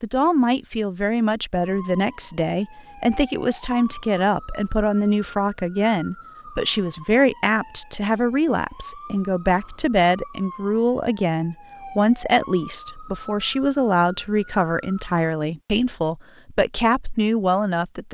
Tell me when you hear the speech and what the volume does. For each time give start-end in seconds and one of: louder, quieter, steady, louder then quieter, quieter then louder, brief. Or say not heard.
0.0-18.0 steady.